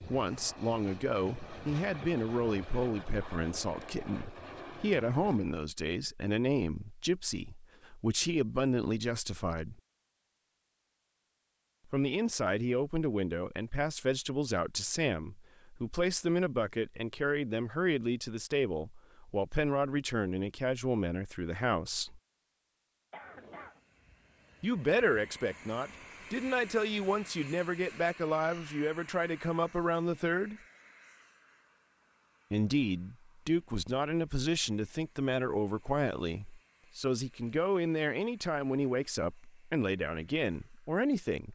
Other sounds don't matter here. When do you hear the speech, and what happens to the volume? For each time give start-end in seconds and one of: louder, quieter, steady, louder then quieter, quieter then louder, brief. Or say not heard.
0.0-9.8 steady
11.9-22.2 steady
24.6-30.6 steady
32.5-41.5 steady.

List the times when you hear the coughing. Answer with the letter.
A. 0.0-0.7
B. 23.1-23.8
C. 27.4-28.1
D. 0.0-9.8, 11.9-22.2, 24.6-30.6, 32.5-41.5
B.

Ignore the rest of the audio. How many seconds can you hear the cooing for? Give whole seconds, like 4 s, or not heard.
not heard.